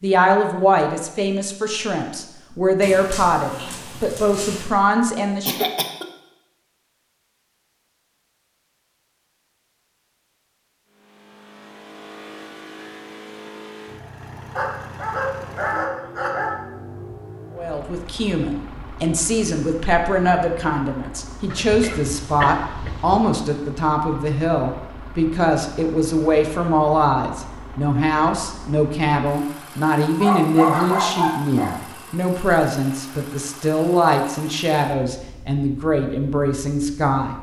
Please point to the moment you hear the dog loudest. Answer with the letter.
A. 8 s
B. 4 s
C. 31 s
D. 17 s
C.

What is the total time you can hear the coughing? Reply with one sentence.
You can hear the coughing for 2 seconds altogether.